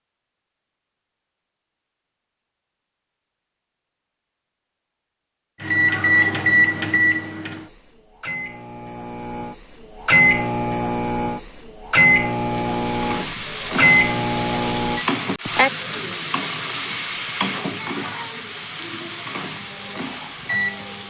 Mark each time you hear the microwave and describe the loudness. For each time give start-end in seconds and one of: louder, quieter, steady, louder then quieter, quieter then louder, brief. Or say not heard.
5.6-15.1 quieter then louder
19.5-21.0 brief.